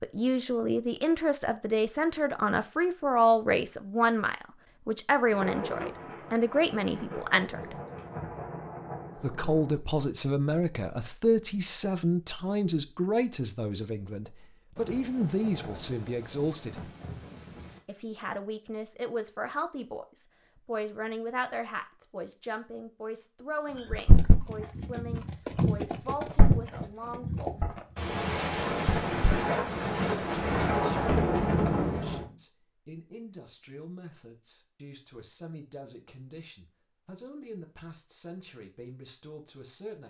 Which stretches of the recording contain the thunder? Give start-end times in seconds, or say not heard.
5.3-9.8, 14.8-17.8, 27.9-32.2.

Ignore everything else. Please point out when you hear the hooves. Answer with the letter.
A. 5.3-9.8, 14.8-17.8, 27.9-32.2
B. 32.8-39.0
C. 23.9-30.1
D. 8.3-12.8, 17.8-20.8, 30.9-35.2
C.